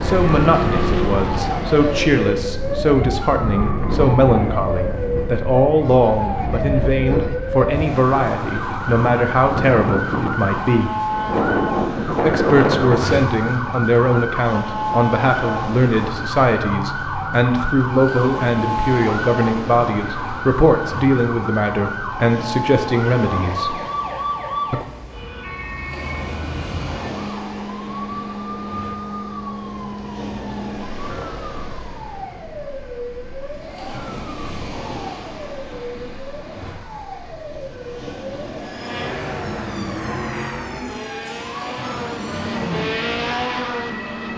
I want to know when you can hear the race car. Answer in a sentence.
You can hear the race car from 0.0 to 2.3 s and from 38.8 to 44.3 s.